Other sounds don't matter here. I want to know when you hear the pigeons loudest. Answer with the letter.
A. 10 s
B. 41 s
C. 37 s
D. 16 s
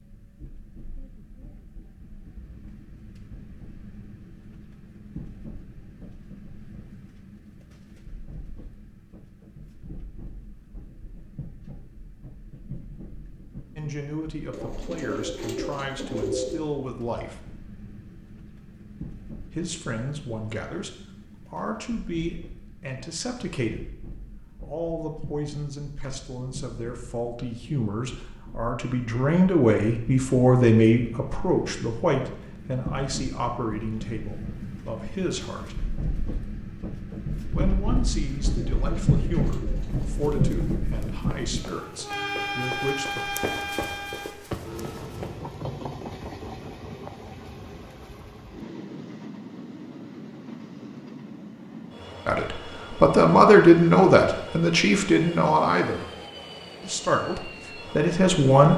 D.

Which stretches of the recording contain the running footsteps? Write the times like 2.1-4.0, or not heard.
39.9-45.5.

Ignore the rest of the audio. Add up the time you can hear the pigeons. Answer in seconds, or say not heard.
4 s.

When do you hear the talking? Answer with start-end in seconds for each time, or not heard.
13.8-17.4, 19.5-35.8, 37.5-43.4, 52.2-56.0, 56.8-58.7.